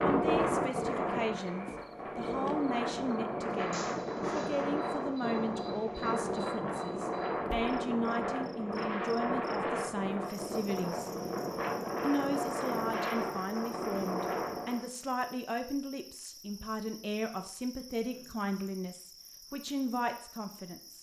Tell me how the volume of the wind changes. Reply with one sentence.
The volume of the wind stays about the same.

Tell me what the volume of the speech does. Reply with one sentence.
The volume of the speech stays about the same.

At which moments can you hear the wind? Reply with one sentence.
The wind can be heard from 0.0 to 14.8 s.